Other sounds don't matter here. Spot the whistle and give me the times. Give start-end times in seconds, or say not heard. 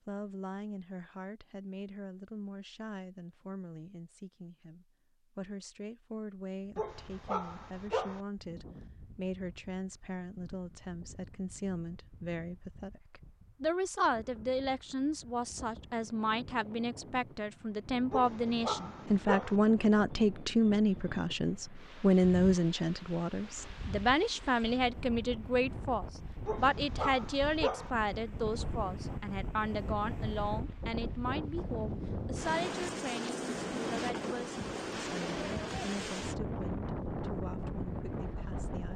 not heard.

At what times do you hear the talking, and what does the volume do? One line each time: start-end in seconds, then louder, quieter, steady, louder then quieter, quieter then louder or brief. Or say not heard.
0.1-38.9 louder then quieter.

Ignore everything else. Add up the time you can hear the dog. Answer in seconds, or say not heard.
4 s.